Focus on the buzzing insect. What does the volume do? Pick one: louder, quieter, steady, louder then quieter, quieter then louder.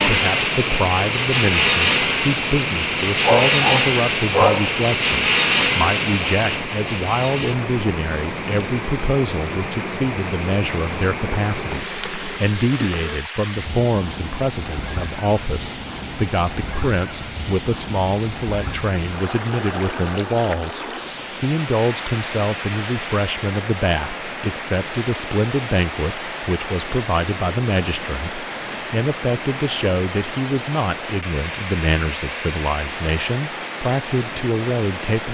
quieter.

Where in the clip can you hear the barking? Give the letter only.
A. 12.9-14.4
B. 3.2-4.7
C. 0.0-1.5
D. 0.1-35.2
B.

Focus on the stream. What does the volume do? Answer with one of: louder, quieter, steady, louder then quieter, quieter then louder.
steady.